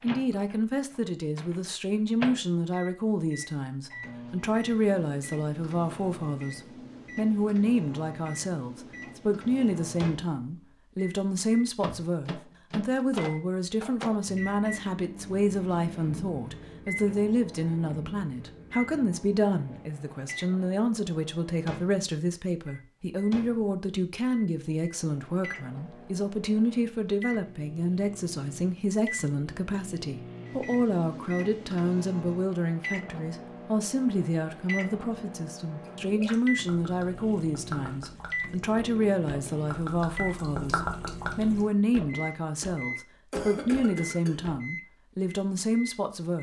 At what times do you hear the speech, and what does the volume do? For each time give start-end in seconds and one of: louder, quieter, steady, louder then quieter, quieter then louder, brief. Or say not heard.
0.0-46.3 steady.